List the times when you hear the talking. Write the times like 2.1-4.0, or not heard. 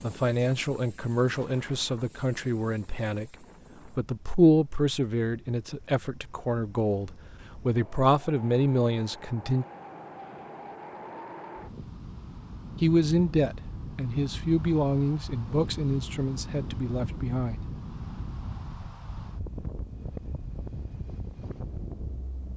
0.0-9.7, 12.8-17.6.